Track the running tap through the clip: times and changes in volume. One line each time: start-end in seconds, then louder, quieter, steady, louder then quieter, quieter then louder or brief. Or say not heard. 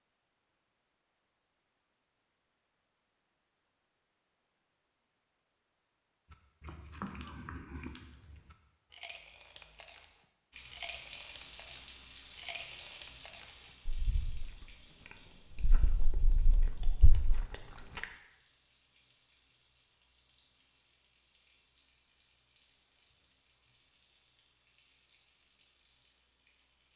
10.5-26.9 quieter.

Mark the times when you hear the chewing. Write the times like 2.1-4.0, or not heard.
6.3-14.7, 15.5-18.1.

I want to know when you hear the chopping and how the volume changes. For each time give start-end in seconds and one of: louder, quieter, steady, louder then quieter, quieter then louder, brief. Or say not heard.
not heard.